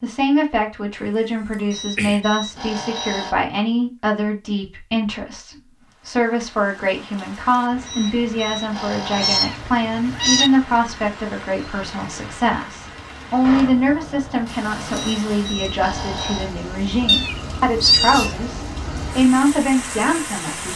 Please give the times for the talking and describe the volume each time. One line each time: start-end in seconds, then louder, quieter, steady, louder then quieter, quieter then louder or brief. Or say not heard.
0.0-20.7 steady.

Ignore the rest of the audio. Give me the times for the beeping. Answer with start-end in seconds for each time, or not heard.
1.7-3.4, 7.8-9.5, 14.9-16.6.